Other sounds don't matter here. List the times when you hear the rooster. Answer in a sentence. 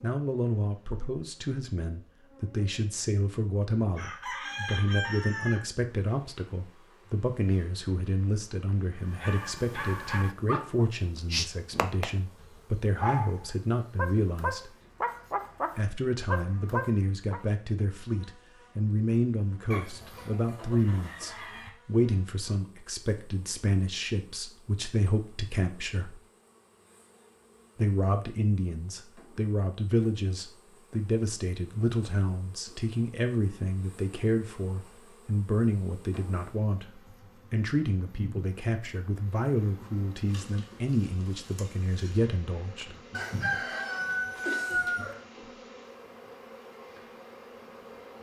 The rooster can be heard from 4.0 to 5.6 s, from 19.7 to 21.7 s and from 43.1 to 45.1 s.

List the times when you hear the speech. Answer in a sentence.
You can hear the speech from 0.0 to 14.7 s, from 15.8 to 26.2 s and from 27.8 to 43.0 s.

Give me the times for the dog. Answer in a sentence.
You can hear the dog from 9.1 to 17.4 s.